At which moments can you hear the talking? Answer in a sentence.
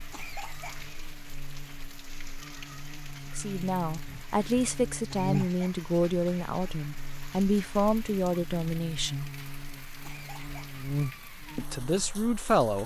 You can hear the talking from 3.4 to 9.2 s and from 11.6 to 12.8 s.